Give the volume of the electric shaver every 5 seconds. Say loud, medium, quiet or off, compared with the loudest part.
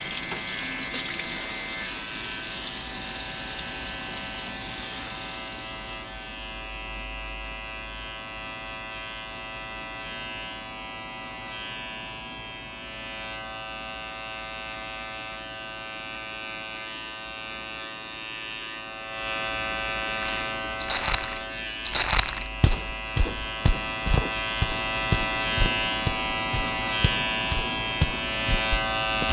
medium, medium, medium, medium, medium, loud.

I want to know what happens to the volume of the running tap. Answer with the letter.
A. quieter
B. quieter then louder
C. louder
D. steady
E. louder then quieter
A.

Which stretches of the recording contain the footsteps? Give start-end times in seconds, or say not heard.
20.2-29.2.